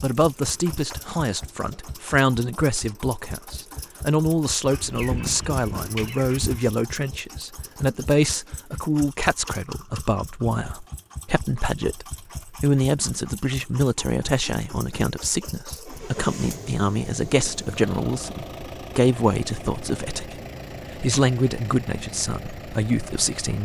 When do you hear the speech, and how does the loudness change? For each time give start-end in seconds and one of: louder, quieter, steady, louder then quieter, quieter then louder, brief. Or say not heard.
0.0-23.6 steady.